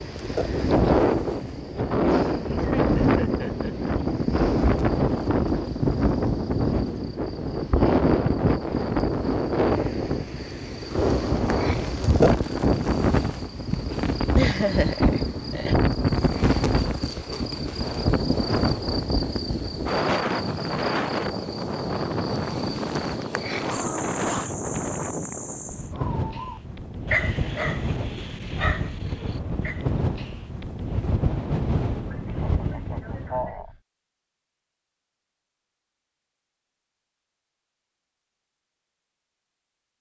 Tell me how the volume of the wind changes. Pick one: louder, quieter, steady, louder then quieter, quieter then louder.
quieter.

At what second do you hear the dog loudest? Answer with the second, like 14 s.
27 s.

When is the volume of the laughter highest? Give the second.
15 s.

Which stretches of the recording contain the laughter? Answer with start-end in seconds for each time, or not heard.
2.0-3.9, 13.7-15.8, 32.1-33.7.